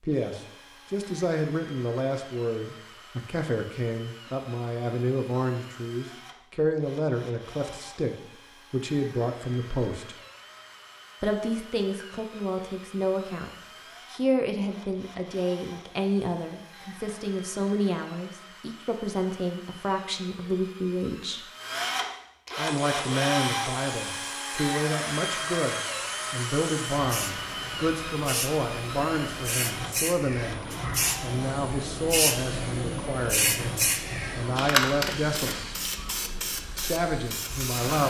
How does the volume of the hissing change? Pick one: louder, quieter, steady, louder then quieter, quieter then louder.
louder then quieter.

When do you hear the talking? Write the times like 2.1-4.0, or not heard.
0.0-10.2, 11.2-21.4, 22.6-35.8, 36.8-38.0.